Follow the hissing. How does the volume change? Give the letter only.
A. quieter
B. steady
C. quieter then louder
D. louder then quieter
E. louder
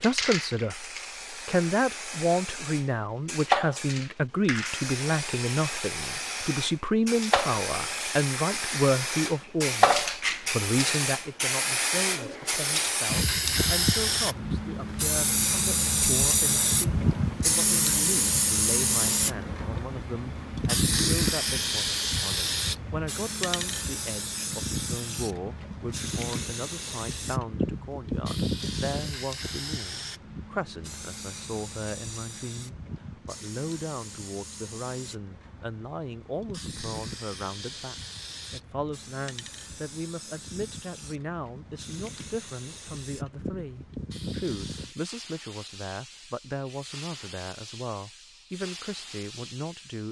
A.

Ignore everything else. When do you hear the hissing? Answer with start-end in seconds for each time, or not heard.
0.0-50.0.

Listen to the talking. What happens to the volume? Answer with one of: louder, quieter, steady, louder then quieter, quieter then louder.
quieter.